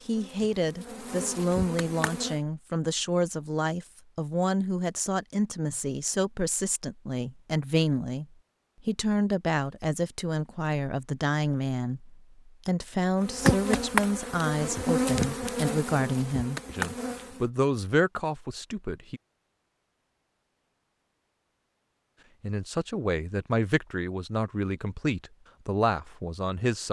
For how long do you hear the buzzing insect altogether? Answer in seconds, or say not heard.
7 s.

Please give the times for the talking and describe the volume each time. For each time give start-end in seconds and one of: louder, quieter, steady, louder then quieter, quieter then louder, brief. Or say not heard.
0.0-19.2 steady
22.4-26.8 steady.